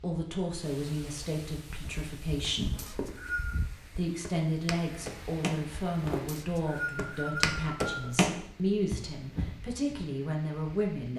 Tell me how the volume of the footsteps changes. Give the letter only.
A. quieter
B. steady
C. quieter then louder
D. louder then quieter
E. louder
E.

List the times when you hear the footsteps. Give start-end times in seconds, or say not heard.
1.8-9.9.